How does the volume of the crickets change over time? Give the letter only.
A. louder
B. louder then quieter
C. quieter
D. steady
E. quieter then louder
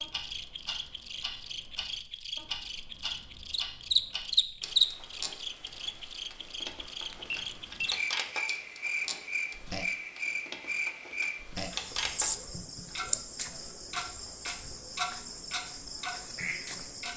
B.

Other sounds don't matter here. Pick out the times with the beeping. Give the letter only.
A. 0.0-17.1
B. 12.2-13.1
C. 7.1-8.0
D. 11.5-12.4
C.